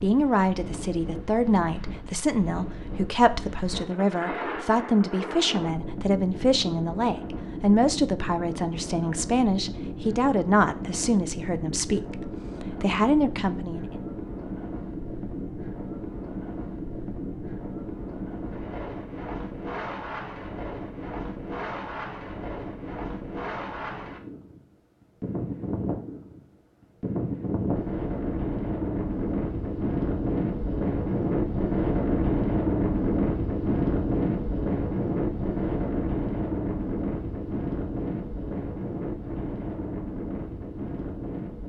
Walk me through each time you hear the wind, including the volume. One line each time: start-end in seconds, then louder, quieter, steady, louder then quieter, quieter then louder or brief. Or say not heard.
0.0-41.6 louder.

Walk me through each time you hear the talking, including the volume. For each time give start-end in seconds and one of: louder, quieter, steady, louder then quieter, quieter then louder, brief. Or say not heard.
0.0-13.8 steady.